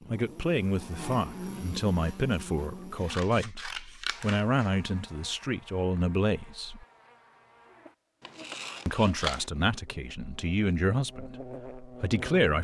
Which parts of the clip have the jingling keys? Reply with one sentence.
You can't hear the jingling keys here.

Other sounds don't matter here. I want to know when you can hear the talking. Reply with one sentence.
The talking can be heard from 0.1 to 6.8 s and from 8.8 to 12.6 s.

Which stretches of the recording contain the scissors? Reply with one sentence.
The scissors can be heard from 2.6 to 4.7 s and from 8.2 to 9.5 s.